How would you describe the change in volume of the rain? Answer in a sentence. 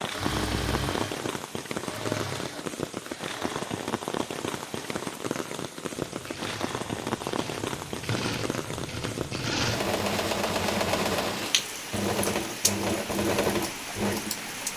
The volume of the rain stays about the same.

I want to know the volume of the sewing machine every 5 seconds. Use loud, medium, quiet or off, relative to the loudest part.
medium, medium, loud.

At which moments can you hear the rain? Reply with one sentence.
The rain can be heard from 0.0 to 14.7 s.